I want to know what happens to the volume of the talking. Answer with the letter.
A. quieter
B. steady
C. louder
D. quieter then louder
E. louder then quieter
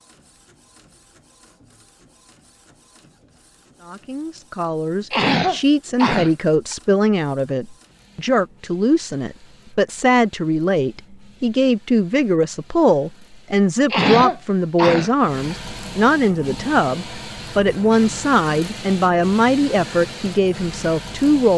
B.